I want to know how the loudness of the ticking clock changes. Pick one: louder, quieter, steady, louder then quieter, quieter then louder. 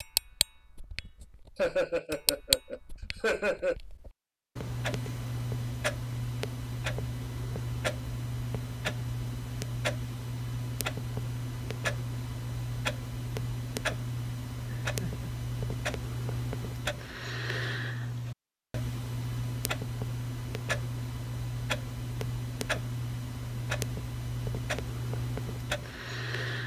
steady.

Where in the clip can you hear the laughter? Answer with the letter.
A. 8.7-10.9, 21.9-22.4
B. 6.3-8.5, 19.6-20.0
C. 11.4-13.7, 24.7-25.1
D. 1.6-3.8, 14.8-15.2
D.